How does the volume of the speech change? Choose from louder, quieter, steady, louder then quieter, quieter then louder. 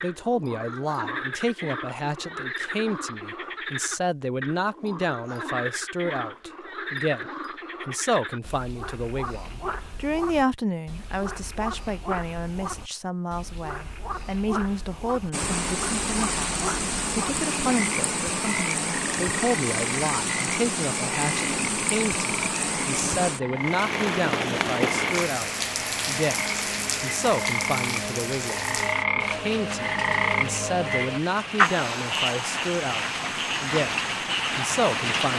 steady.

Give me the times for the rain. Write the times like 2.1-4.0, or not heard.
15.3-35.3.